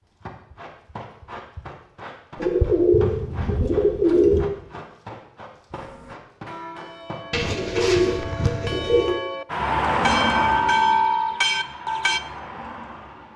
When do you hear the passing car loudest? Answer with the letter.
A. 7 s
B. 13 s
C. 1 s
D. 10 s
D.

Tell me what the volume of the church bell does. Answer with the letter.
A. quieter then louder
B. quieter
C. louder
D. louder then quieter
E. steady
C.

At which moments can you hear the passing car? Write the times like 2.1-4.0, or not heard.
9.4-13.3.